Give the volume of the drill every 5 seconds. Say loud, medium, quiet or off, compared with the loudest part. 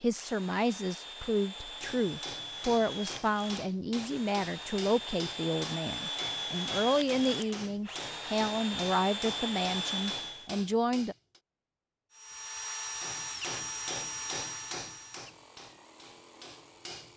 medium, loud, loud, quiet.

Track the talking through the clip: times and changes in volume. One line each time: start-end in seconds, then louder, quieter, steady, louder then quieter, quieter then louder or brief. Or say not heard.
0.0-11.2 steady.